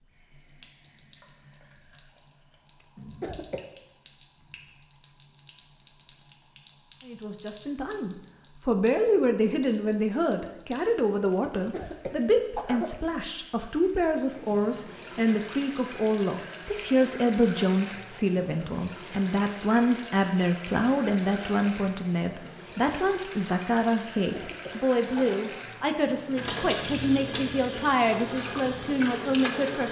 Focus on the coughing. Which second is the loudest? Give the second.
13 s.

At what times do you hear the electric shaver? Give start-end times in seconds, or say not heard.
not heard.